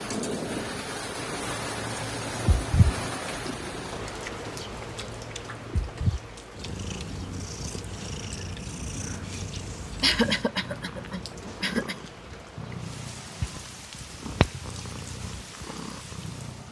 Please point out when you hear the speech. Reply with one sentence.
The speech can't be heard in this clip.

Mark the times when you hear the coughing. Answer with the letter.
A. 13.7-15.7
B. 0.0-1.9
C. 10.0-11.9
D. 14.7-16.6
C.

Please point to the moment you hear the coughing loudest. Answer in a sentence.
The loudest moment of the coughing is at 10 seconds.